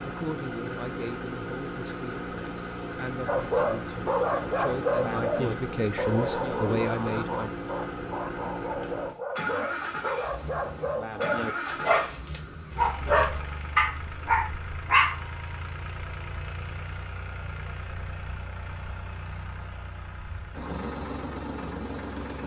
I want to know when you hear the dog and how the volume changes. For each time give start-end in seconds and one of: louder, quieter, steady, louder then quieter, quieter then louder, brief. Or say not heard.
3.2-15.2 quieter then louder.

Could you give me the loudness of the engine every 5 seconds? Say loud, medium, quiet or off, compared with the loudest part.
loud, loud, loud, medium, loud.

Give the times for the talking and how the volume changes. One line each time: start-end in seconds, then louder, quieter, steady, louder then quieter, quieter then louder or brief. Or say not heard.
0.0-7.6 louder.